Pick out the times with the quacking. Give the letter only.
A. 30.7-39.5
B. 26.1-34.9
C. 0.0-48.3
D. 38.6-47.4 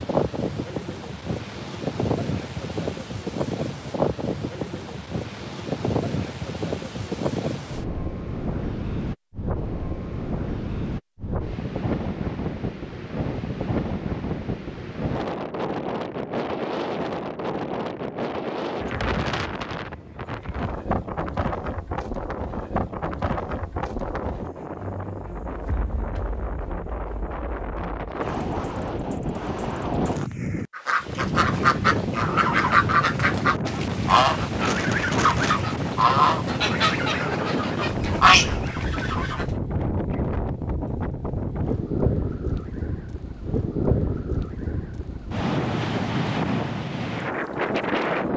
A.